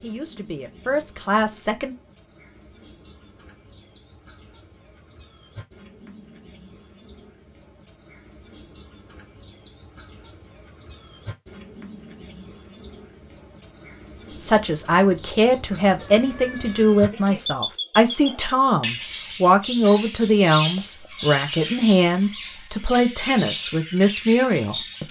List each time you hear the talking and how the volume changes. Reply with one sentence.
You can hear the talking briefly from 0.0 to 1.9 s; and from 14.4 to 25.0 s, at a steady volume.